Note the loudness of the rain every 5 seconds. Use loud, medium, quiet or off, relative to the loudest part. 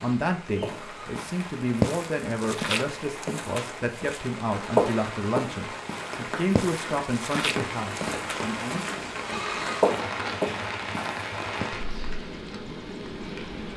medium, loud, loud.